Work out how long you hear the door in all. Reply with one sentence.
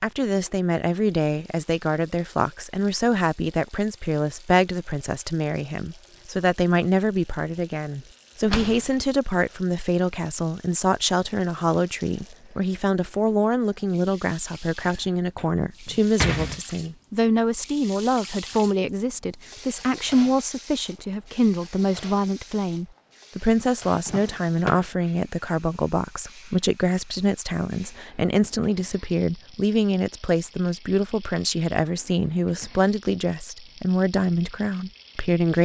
You can hear the door for 3 seconds altogether.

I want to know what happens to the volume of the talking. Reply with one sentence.
The volume of the talking stays about the same.